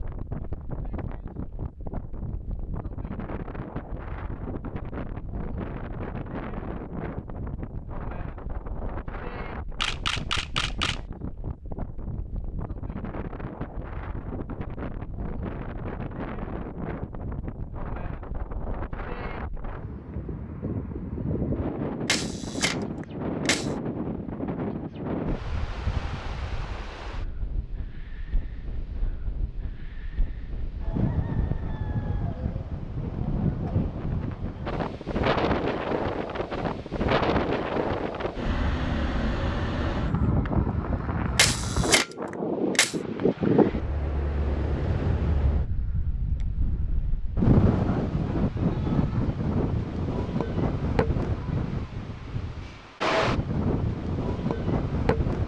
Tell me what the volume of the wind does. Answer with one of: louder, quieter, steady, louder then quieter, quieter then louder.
louder.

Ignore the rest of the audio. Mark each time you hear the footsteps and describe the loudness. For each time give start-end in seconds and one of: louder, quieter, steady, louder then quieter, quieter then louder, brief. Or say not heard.
not heard.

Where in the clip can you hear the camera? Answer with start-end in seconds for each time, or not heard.
9.8-11.0, 22.1-23.8, 41.4-43.0.